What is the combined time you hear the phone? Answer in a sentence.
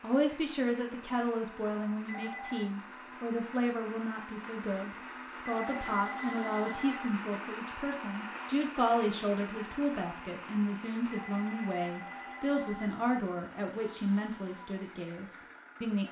You can hear the phone for 4 seconds altogether.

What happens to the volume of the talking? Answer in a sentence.
The volume of the talking stays about the same.